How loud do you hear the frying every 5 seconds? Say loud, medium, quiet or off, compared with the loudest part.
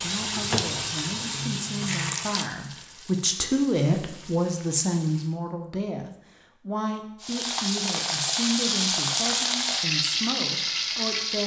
medium, loud, loud.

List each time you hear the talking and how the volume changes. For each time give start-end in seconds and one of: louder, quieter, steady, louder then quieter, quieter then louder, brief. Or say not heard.
0.0-11.4 louder then quieter.